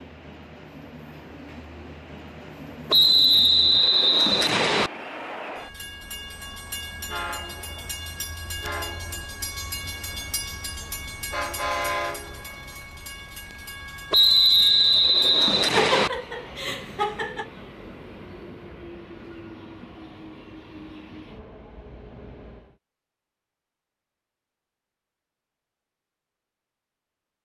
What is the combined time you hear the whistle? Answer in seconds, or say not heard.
4 s.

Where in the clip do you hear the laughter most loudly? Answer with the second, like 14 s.
16 s.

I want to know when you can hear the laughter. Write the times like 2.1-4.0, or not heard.
15.8-17.4.